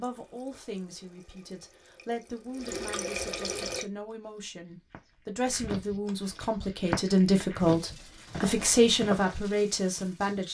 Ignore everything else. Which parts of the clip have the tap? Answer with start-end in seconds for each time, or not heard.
0.0-3.9, 7.5-10.4.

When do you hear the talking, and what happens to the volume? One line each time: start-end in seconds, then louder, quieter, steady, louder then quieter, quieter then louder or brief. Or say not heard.
0.0-10.4 louder.